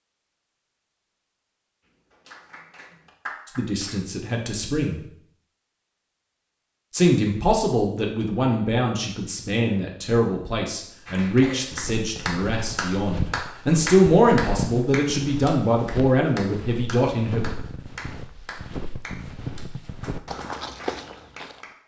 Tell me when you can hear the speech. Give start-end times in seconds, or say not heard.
3.5-5.0, 6.9-17.5.